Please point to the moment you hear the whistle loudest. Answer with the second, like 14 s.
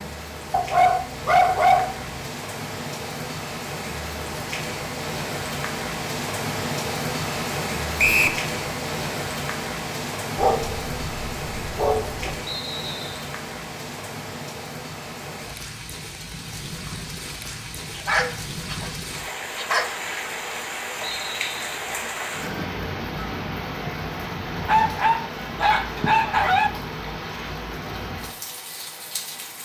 8 s.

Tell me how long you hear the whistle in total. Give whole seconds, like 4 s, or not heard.
2 s.